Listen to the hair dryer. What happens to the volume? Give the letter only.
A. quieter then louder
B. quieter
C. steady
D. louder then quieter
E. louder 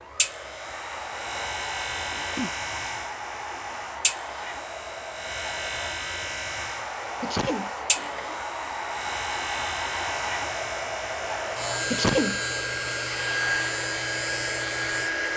E.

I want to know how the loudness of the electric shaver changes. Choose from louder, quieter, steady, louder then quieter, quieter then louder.
steady.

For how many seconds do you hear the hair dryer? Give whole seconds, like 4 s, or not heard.
15 s.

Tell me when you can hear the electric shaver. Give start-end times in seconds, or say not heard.
0.0-15.3.